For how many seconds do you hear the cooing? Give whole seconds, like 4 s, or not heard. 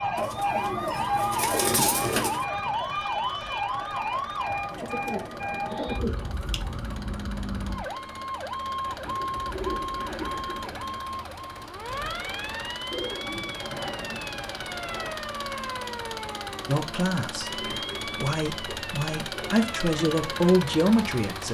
11 s.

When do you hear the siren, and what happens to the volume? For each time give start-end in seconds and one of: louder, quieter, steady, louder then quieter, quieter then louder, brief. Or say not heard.
0.0-21.5 quieter.